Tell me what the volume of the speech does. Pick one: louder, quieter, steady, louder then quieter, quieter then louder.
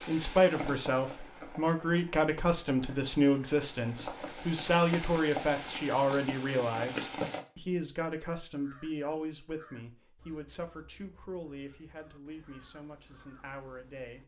quieter.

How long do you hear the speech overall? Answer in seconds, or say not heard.
14 s.